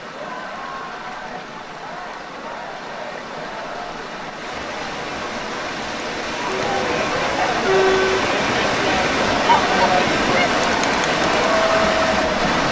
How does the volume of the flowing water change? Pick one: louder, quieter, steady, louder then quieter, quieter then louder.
louder.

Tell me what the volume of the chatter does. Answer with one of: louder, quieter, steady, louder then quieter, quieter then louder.
louder.